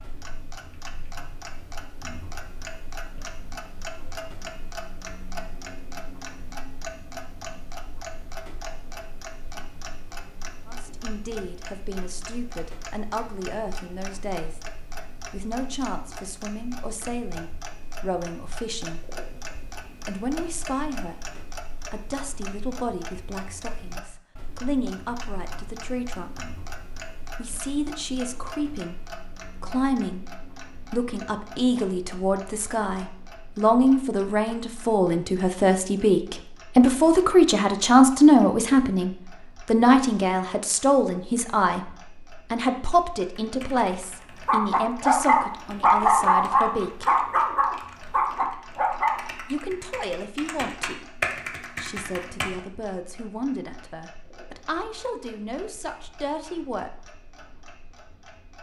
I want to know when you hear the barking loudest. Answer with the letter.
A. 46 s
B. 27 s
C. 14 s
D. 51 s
A.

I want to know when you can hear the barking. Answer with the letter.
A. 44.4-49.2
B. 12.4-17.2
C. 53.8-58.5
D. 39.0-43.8
A.